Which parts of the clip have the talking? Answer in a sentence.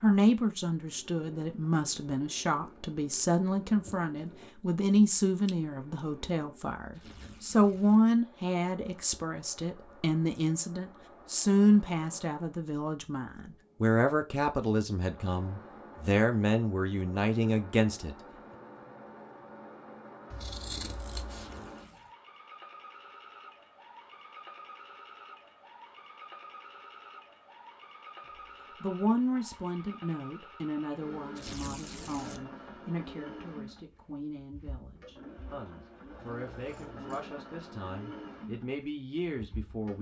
You can hear the talking from 0.0 to 18.1 s and from 28.8 to 39.9 s.